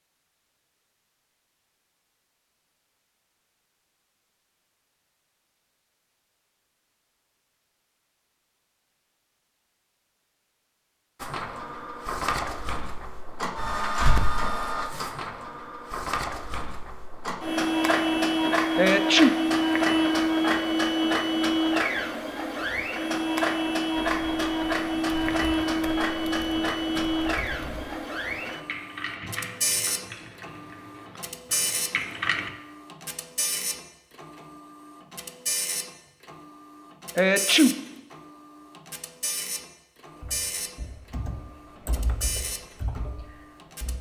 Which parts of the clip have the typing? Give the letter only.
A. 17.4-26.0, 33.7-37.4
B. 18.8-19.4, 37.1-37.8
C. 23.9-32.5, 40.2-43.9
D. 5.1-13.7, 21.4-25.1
C.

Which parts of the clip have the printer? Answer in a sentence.
You can hear the printer from 11.2 to 43.9 s.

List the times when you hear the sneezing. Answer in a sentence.
You can hear the sneezing from 18.8 to 19.4 s and from 37.1 to 37.8 s.